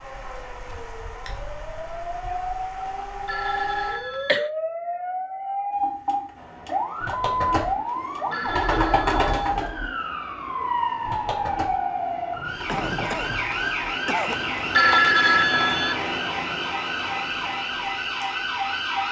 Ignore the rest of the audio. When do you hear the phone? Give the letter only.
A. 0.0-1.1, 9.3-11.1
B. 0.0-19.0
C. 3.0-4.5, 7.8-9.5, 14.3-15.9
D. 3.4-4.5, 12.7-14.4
C.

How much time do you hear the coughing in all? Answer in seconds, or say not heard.
3 s.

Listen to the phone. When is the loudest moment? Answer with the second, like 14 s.
15 s.